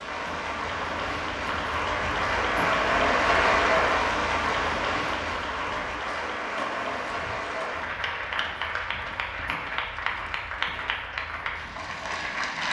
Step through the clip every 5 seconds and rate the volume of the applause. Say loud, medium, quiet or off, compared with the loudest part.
loud, medium, medium.